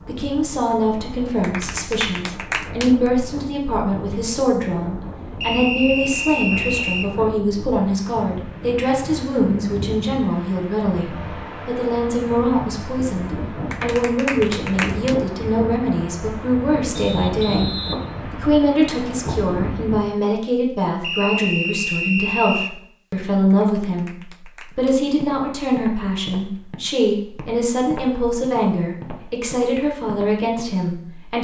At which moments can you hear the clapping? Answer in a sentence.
The clapping can be heard from 1.4 to 3.1 s, from 13.7 to 15.2 s and from 23.5 to 24.9 s.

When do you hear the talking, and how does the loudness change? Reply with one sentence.
The talking can be heard from 0.1 to 31.3 s, at a steady volume.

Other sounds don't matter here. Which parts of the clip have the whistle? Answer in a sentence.
The whistle can be heard from 5.4 to 7.1 s, from 16.9 to 18.1 s and from 21.0 to 22.8 s.